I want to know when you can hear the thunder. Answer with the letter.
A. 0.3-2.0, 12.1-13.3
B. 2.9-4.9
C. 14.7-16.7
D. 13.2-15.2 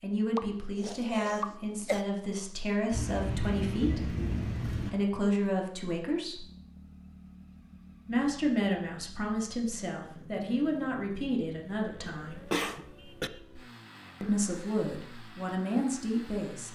B.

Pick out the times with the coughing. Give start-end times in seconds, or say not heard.
0.3-2.0, 12.1-13.3.